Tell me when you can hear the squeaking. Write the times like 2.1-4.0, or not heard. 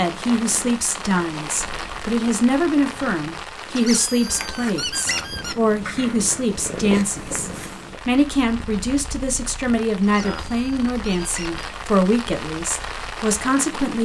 3.7-5.5, 10.0-11.5.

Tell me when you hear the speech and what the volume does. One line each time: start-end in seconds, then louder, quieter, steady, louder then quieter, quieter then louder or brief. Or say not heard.
0.0-14.0 steady.